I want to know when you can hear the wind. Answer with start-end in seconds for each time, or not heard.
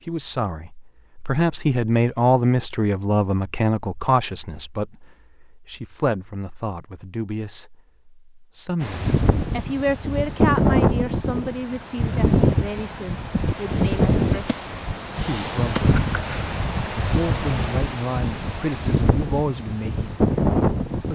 8.8-21.1.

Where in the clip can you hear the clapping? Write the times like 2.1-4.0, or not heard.
not heard.